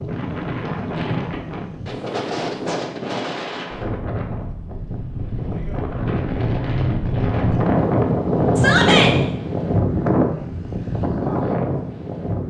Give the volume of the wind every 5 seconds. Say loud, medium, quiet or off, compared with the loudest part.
medium, loud, loud.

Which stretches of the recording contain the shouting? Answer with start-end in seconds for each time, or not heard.
8.6-9.2.